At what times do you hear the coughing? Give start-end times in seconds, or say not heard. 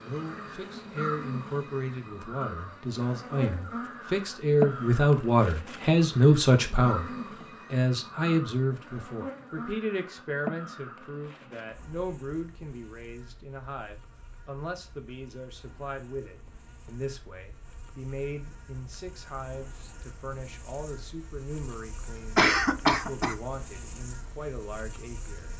22.4-23.4.